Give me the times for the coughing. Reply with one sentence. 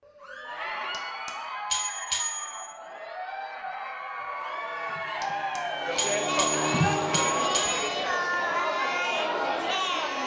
You can't hear the coughing here.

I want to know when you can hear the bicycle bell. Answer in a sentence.
The bicycle bell can be heard from 0.9 to 2.7 s and from 5.2 to 7.8 s.